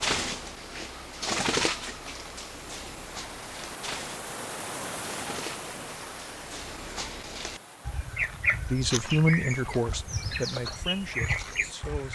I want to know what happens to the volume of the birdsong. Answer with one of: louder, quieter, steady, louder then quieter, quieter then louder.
quieter then louder.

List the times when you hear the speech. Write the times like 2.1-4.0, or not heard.
8.7-12.1.